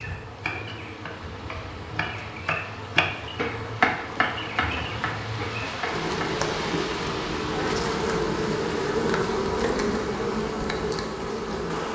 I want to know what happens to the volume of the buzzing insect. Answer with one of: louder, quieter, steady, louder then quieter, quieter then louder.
louder.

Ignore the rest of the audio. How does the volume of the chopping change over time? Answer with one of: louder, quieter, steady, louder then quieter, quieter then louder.
louder then quieter.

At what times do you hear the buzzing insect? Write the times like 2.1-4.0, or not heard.
0.0-11.9.